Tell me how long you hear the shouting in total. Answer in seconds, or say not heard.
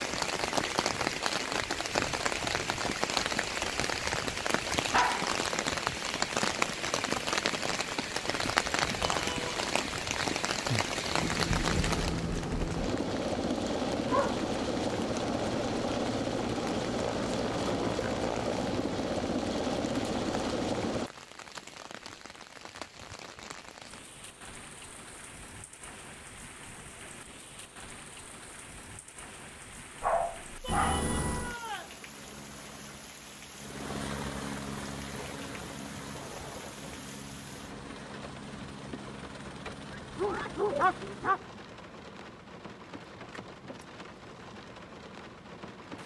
2 s.